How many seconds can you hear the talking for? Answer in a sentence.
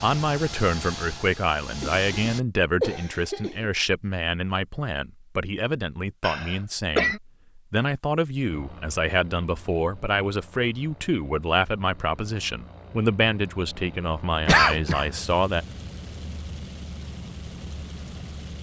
You can hear the talking for 16 seconds altogether.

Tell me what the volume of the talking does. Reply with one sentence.
The loudness of the talking stays about the same.